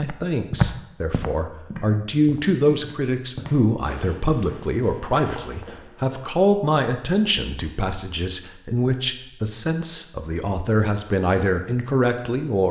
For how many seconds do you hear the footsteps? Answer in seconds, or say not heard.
6 s.